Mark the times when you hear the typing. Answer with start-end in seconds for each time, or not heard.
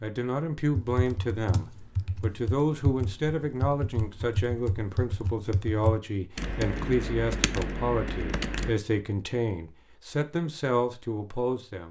0.8-8.8.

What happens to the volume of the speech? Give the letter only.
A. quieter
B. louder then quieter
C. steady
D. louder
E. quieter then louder
C.